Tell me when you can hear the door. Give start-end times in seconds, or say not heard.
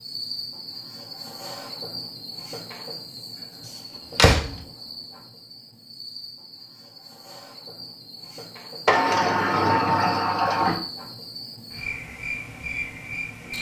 3.6-4.6, 8.8-10.8.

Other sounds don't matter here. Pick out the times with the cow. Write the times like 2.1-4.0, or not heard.
not heard.